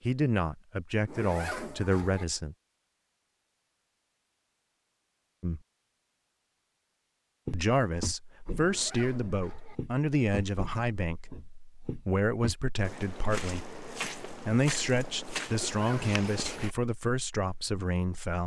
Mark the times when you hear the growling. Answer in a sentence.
The growling can't be heard in this clip.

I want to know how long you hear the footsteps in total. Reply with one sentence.
You can hear the footsteps for 9 seconds altogether.